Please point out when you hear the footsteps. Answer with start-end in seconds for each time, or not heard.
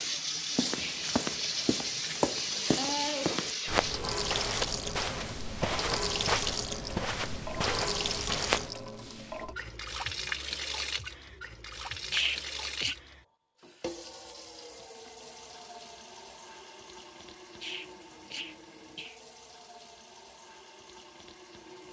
0.6-8.7.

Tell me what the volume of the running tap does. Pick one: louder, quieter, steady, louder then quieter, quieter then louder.
quieter.